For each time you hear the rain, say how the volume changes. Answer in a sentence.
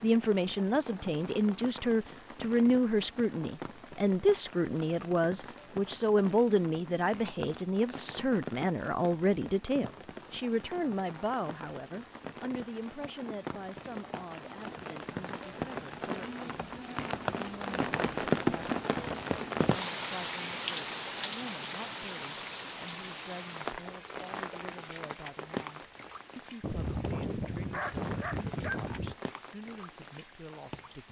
You can hear the rain from 0.0 to 31.0 s, getting louder then quieter.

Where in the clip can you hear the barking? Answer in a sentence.
The barking can be heard from 26.6 to 29.1 s.